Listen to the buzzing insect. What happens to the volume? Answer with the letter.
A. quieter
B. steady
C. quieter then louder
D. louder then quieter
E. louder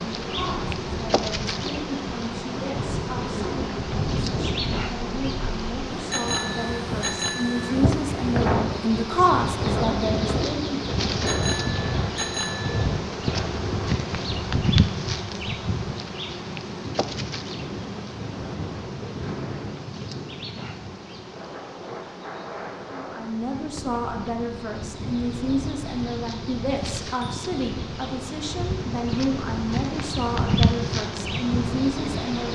C.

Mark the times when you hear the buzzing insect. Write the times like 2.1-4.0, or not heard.
0.0-32.5.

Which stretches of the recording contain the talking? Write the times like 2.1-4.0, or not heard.
0.2-10.8, 22.9-32.5.